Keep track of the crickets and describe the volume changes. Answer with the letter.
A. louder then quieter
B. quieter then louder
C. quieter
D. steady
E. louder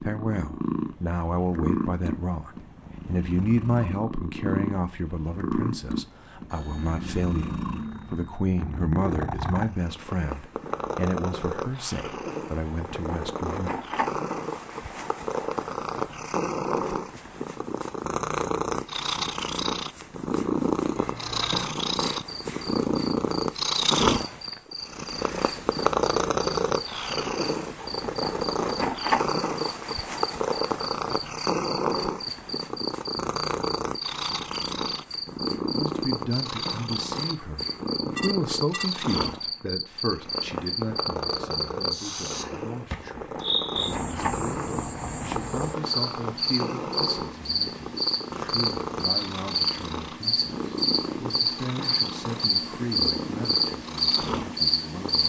E.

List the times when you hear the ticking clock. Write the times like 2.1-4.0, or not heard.
not heard.